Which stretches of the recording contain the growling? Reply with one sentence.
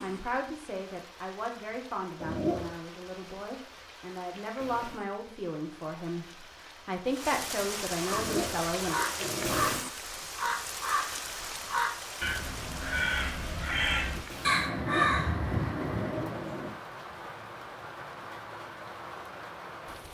You can hear the growling from 2.2 to 2.8 s, from 8.1 to 9.8 s and from 14.7 to 16.7 s.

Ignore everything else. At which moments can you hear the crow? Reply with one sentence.
You can hear the crow from 8.0 to 16.5 s.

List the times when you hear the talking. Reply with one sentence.
The talking can be heard from 0.0 to 9.0 s.